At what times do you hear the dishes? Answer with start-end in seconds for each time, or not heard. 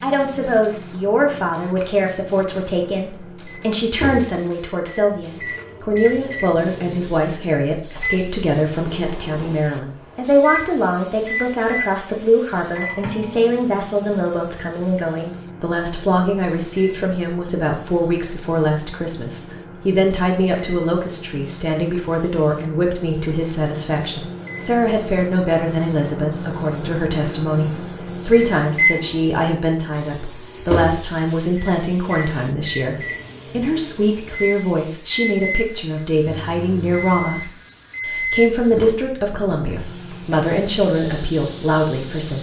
not heard.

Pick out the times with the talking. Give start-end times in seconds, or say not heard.
0.0-42.3.